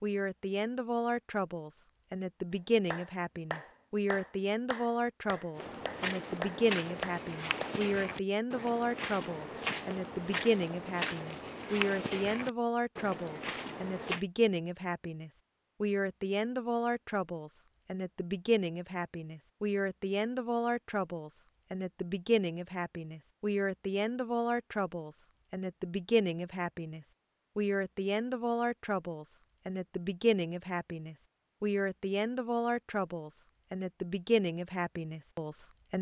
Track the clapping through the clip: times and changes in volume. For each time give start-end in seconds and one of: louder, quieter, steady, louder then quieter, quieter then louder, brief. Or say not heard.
2.9-7.8 quieter then louder.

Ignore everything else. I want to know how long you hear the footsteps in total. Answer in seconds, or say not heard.
9 s.